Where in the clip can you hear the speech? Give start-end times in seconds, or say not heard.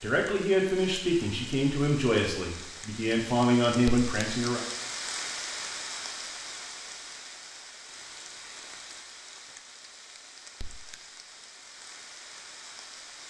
0.0-4.6.